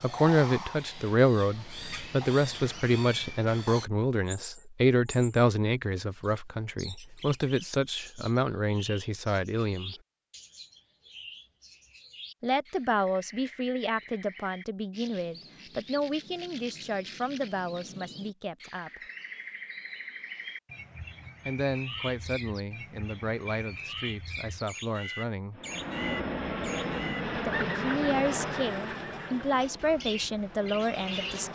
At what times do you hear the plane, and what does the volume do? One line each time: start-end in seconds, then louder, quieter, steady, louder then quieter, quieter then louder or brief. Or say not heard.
25.5-31.4 quieter.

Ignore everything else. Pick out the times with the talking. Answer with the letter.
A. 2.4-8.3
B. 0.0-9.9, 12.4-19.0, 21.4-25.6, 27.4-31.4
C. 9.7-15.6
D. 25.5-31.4
B.